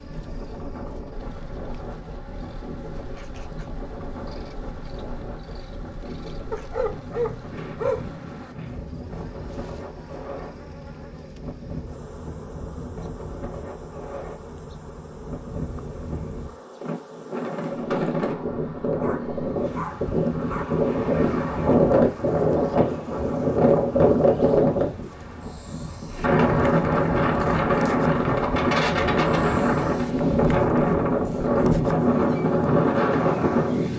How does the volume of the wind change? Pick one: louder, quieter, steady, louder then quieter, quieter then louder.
louder.